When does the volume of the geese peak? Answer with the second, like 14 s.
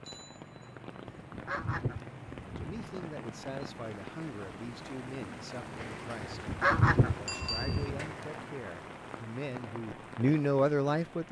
7 s.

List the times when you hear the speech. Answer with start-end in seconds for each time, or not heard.
2.5-6.5, 7.2-11.2.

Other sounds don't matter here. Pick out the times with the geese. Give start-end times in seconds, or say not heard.
1.2-2.9, 6.2-8.2.